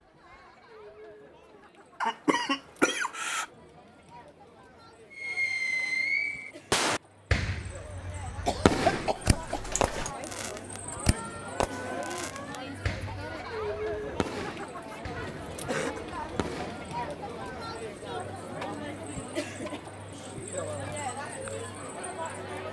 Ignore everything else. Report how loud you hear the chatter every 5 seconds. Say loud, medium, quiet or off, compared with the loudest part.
quiet, medium, loud, loud, loud.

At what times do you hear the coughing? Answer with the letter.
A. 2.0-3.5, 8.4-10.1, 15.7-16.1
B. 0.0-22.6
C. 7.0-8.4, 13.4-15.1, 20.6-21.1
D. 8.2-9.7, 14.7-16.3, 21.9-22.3
A.